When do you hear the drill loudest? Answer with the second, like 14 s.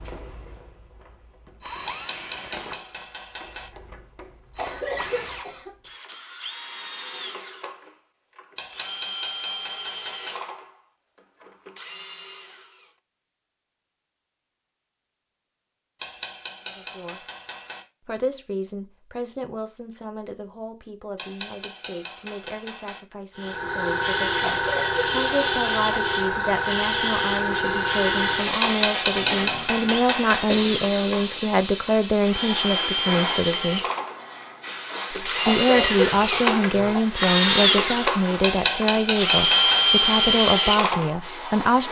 40 s.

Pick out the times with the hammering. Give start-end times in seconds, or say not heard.
1.9-3.7, 8.6-10.4, 16.0-17.9, 21.1-23.0, 28.6-30.4, 38.4-39.9.